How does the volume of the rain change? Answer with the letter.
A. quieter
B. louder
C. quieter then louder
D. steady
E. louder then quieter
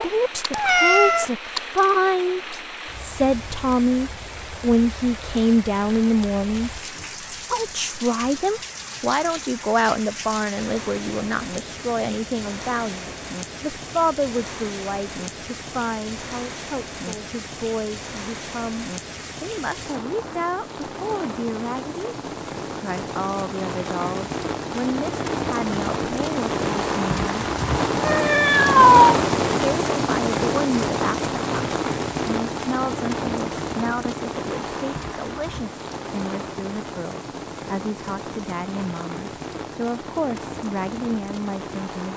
E.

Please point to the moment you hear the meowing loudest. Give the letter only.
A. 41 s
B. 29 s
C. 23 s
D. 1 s
B.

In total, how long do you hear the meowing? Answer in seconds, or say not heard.
2 s.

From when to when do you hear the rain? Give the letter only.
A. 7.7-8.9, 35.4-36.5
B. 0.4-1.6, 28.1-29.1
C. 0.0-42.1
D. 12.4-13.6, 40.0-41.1
C.